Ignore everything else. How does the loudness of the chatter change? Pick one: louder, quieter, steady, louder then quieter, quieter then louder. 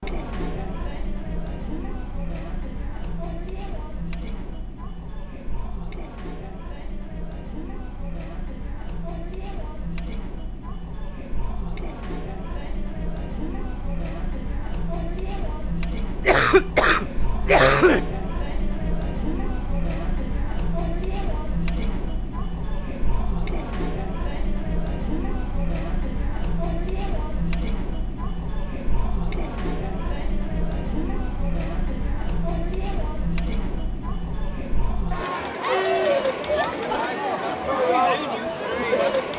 louder.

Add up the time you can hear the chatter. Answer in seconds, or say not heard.
39 s.